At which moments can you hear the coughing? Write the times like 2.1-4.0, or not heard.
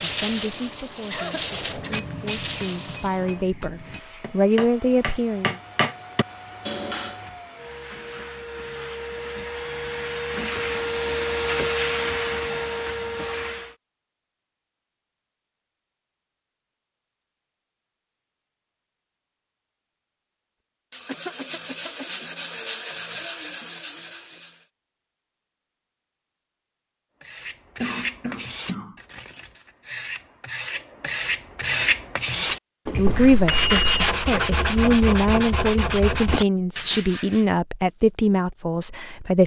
1.1-2.0, 21.1-22.1, 27.8-28.9.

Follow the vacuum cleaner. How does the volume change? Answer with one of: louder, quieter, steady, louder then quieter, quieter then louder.
louder.